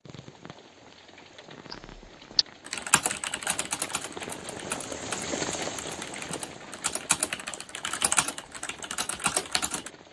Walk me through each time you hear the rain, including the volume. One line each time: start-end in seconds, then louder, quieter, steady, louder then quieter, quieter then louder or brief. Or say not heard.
0.0-10.0 louder then quieter.